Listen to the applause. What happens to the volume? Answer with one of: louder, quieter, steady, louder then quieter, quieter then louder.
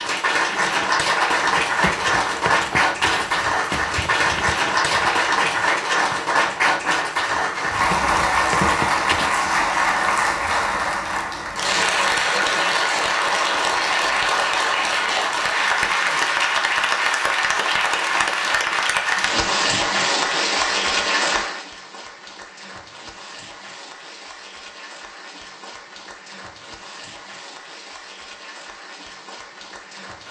quieter.